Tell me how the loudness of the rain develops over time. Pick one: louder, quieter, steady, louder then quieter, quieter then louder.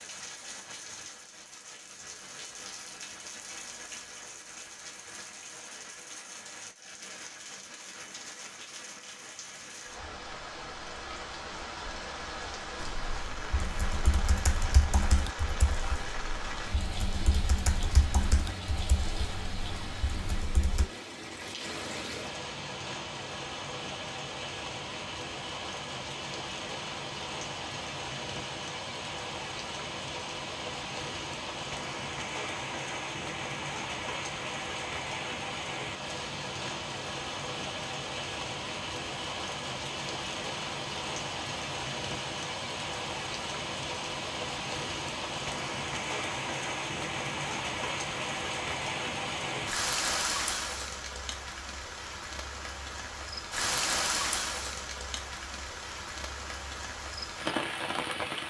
louder.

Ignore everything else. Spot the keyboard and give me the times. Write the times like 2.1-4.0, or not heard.
12.8-20.9.